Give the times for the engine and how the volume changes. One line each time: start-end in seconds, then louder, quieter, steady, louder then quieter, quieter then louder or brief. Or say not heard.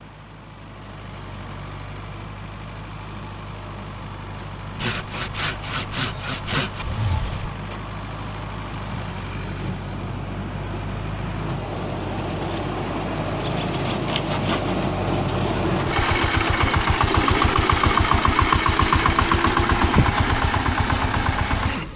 0.0-21.9 louder.